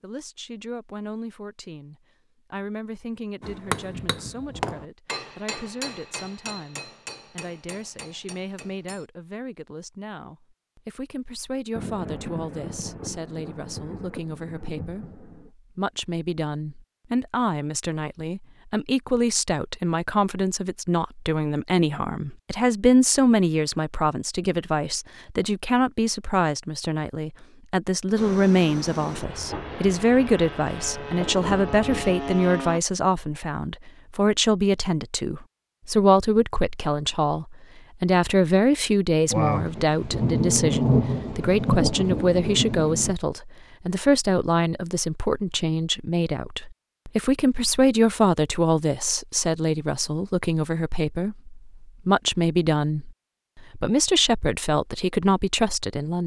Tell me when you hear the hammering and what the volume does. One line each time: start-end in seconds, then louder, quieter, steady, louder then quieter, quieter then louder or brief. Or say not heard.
3.4-9.1 quieter.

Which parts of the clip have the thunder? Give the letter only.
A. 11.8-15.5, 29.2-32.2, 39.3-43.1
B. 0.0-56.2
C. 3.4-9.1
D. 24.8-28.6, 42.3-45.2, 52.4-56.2
A.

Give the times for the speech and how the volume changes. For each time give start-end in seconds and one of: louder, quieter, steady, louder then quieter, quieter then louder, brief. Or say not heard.
0.0-56.2 louder.